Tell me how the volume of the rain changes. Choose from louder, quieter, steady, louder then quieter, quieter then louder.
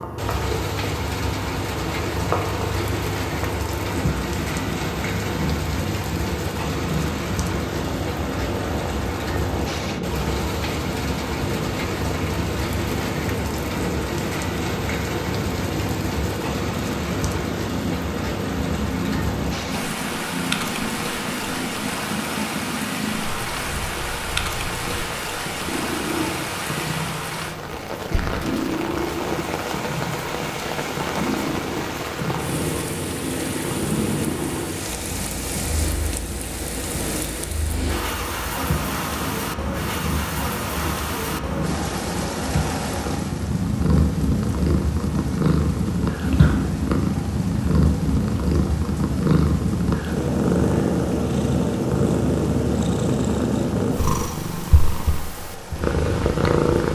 quieter.